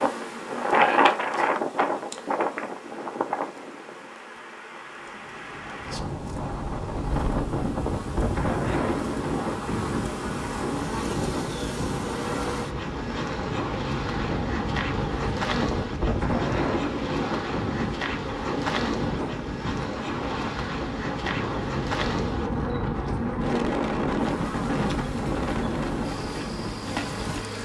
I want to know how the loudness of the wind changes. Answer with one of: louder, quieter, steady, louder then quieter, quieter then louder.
steady.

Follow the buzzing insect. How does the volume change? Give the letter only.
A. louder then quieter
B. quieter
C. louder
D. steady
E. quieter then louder
C.